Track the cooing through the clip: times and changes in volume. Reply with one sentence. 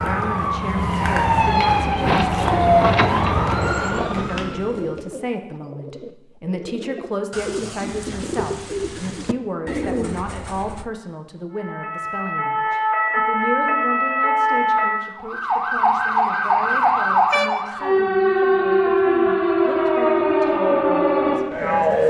The cooing can be heard from 1.9 to 10.8 s, getting quieter then louder.